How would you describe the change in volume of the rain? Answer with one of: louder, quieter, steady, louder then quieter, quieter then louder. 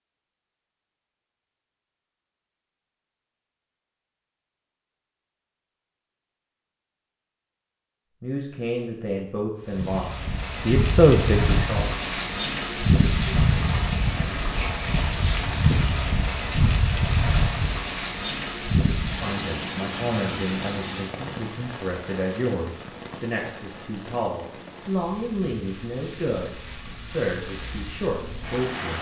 quieter.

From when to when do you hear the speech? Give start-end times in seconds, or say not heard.
8.2-11.9, 19.1-28.9.